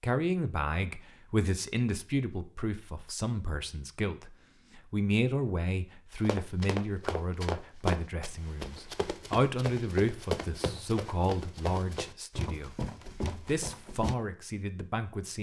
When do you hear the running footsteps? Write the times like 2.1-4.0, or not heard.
6.2-14.2.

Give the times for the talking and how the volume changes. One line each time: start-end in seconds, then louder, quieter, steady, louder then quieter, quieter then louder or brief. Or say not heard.
0.0-12.8 steady
13.4-15.3 brief.